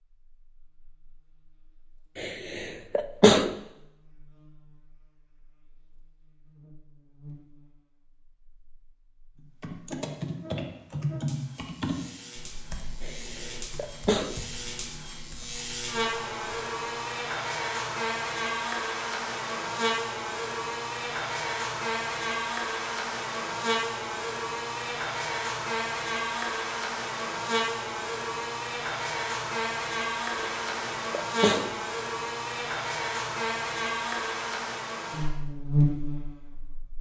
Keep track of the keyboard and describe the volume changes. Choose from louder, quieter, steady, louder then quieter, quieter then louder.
quieter.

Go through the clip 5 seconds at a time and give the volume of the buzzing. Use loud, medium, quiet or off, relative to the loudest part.
quiet, quiet, quiet, loud, loud, loud, loud, loud.